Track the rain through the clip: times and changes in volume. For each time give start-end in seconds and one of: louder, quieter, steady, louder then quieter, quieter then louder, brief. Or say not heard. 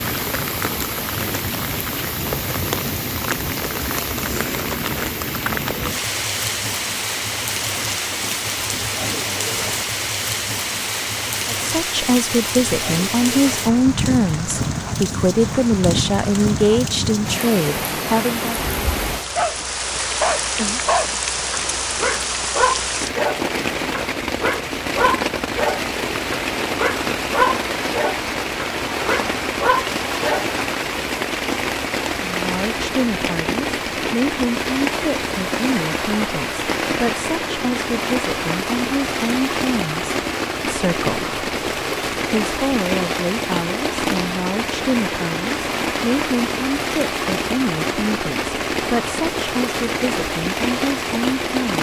0.0-51.7 steady.